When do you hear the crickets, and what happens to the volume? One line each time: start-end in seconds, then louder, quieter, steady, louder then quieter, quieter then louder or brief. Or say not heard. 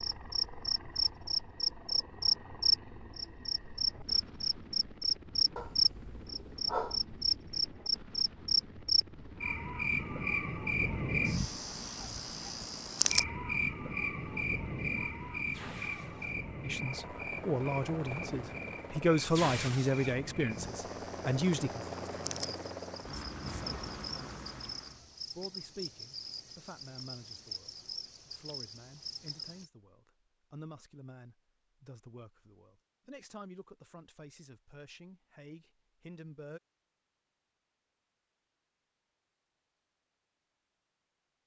0.0-29.7 quieter.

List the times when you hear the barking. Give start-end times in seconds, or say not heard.
5.5-7.0.